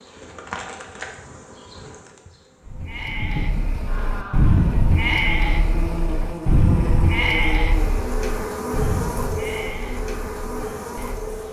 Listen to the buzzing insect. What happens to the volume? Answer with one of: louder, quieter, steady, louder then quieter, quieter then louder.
louder.